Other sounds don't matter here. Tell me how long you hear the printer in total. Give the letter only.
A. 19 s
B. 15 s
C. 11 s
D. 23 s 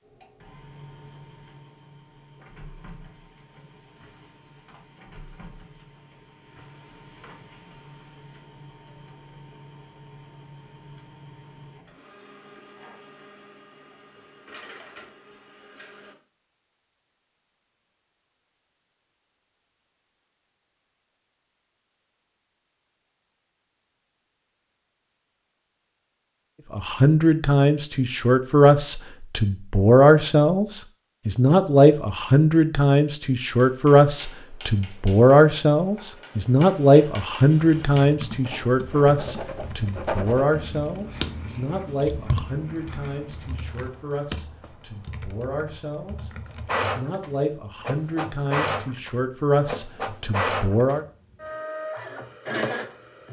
D.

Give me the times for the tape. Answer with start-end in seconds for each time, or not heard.
not heard.